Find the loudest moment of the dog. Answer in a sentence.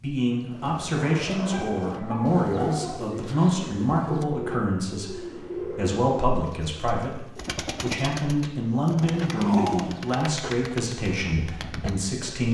The loudest moment of the dog is at 10 seconds.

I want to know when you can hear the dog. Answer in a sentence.
The dog can be heard from 0.9 to 3.0 s and from 9.1 to 10.0 s.